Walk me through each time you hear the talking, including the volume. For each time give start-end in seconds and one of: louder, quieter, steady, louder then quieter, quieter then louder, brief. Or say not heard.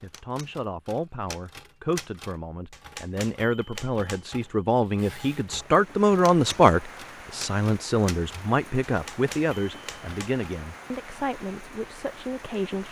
0.0-12.8 louder then quieter.